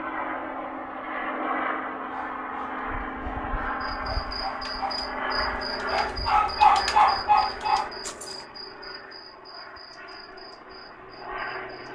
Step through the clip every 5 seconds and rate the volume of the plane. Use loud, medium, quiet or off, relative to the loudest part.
loud, loud, medium.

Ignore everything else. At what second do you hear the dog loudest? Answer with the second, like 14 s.
7 s.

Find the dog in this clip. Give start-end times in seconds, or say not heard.
2.0-8.4.